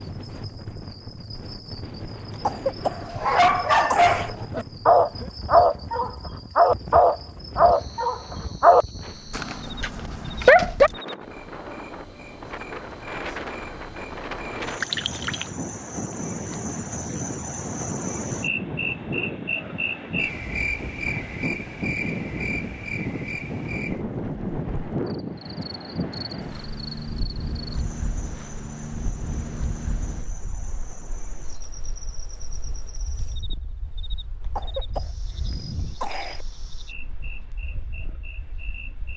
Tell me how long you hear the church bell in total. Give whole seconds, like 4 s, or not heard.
not heard.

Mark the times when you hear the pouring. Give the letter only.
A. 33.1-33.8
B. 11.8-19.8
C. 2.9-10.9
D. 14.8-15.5
D.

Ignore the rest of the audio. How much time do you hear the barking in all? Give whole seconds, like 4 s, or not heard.
8 s.